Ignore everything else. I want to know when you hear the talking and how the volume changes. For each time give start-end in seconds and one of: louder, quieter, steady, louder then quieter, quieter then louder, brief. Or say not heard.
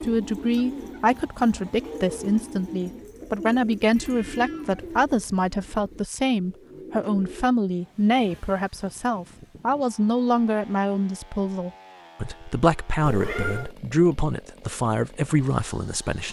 0.0-16.2 steady.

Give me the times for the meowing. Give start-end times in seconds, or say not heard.
3.9-4.8, 13.1-13.8.